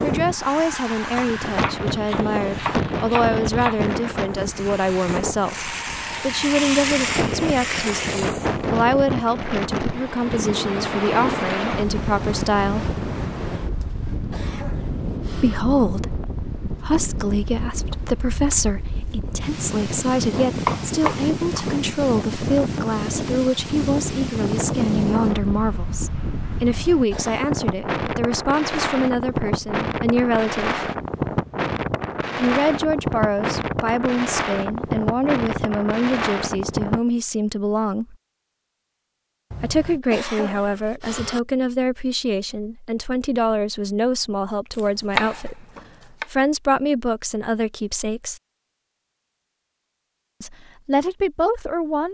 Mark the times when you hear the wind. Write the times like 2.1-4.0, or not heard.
0.0-37.0.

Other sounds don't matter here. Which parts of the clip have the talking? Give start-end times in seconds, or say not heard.
0.0-12.9, 15.3-30.9, 32.4-38.1, 39.6-45.6, 46.2-48.4, 50.4-52.0.